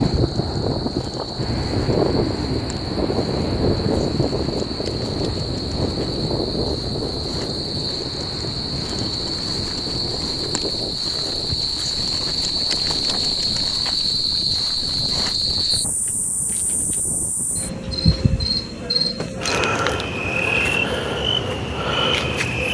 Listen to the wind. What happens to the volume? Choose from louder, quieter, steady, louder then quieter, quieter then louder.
quieter.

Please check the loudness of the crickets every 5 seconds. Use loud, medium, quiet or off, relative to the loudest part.
quiet, medium, loud, loud, loud.